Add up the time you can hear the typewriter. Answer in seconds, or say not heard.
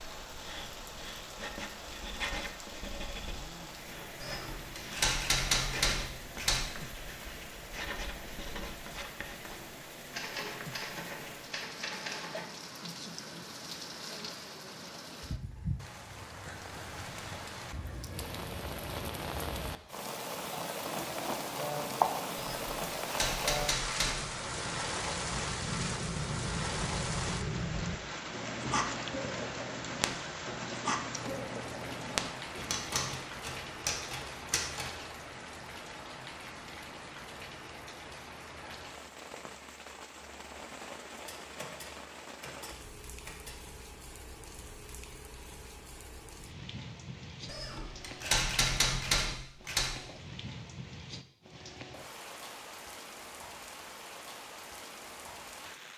14 s.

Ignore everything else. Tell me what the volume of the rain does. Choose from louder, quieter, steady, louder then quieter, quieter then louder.
louder then quieter.